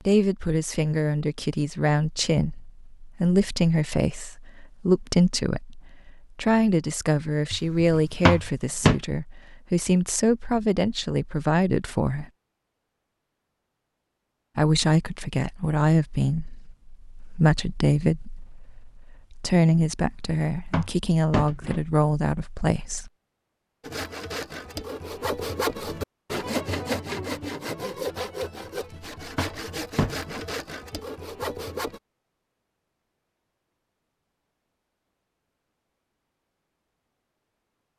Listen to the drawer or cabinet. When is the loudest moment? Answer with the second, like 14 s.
9 s.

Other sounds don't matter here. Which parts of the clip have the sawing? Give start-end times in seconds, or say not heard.
23.8-32.0.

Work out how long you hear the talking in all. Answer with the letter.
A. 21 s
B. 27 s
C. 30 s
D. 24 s
A.